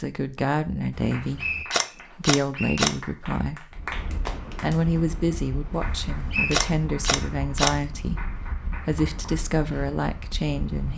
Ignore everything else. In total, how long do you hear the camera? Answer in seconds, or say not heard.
4 s.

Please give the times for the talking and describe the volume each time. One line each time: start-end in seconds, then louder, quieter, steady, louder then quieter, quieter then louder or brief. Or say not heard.
0.0-10.9 steady.